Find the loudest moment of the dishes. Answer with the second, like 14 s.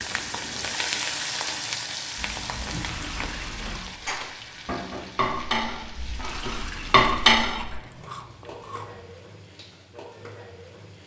7 s.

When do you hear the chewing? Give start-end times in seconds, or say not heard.
2.1-3.9, 7.5-9.1.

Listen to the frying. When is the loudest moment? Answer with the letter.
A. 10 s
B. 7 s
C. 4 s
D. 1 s
D.